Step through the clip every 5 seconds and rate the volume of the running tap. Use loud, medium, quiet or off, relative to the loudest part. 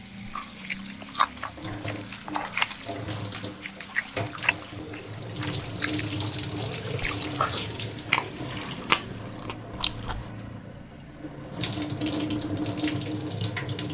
medium, loud, loud.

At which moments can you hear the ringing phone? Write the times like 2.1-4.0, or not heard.
not heard.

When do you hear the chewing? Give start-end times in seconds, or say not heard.
0.2-10.3.